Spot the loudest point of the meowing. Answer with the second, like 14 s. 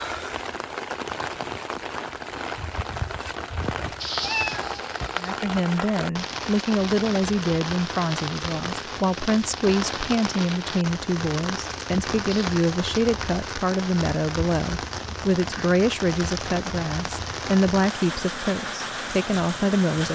4 s.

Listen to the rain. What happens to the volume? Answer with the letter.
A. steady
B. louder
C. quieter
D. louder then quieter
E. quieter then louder
A.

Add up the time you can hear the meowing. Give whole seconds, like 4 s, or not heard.
2 s.